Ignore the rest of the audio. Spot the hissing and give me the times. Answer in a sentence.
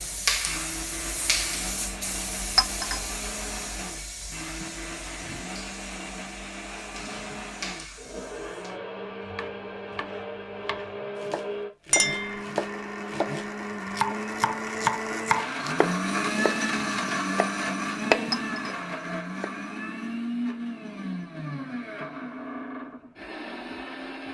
You can hear the hissing from 0.0 to 8.8 s.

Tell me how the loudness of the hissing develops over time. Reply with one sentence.
The loudness of the hissing goes down.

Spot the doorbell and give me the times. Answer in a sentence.
You can't hear the doorbell here.